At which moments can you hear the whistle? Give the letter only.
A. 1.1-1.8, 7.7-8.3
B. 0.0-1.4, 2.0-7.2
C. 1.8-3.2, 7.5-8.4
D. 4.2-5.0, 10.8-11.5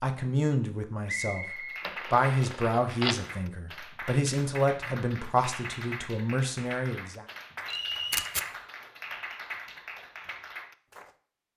A.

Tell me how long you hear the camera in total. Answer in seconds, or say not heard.
2 s.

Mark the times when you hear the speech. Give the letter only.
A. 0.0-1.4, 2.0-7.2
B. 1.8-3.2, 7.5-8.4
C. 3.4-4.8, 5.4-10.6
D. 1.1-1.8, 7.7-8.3
A.